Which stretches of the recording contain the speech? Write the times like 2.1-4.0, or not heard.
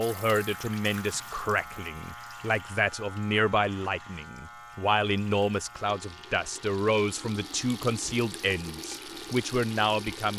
0.0-10.3.